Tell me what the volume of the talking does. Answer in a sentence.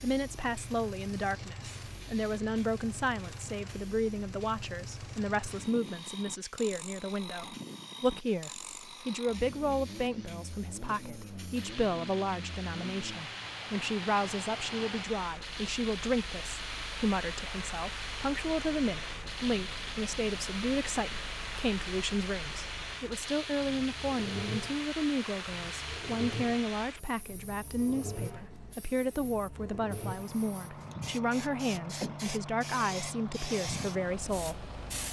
The volume of the talking stays about the same.